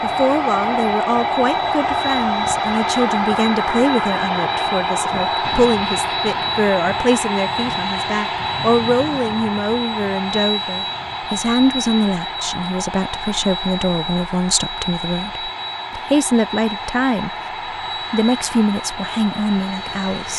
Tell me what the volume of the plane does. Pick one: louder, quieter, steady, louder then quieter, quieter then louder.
quieter.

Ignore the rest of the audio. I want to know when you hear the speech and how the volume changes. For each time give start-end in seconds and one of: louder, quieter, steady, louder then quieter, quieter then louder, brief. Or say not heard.
0.0-17.3 steady
18.1-20.3 brief.